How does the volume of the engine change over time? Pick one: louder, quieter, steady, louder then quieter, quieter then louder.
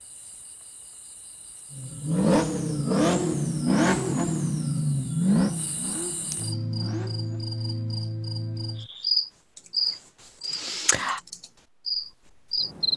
quieter.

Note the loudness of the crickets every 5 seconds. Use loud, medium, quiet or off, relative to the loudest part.
quiet, loud, loud.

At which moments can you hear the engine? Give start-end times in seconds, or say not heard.
1.7-7.5.